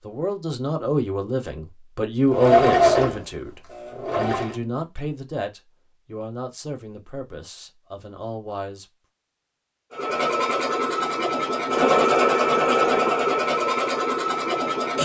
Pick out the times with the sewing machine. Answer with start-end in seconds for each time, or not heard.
2.2-4.5, 9.9-15.0.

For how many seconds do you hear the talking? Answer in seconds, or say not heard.
9 s.